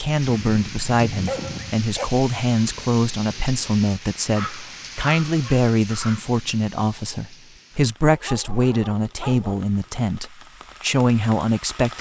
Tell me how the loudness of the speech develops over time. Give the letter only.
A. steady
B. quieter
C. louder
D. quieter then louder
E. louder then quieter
A.